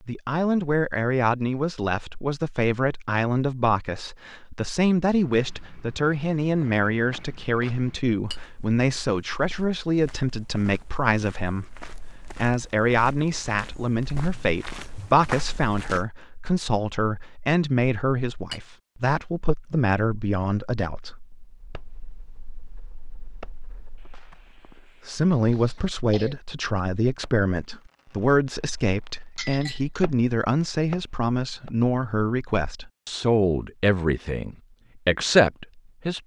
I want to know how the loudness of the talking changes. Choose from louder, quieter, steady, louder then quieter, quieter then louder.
steady.